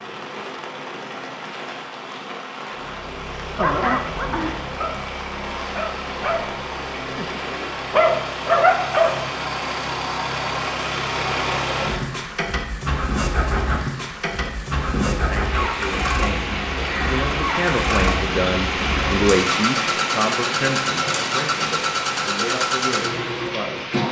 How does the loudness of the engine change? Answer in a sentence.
The loudness of the engine goes up.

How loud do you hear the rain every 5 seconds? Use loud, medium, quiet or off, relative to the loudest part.
medium, medium, medium, loud, loud.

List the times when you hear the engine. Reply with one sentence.
The engine can be heard from 2.7 to 24.0 s.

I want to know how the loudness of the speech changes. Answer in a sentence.
The loudness of the speech goes up, then down.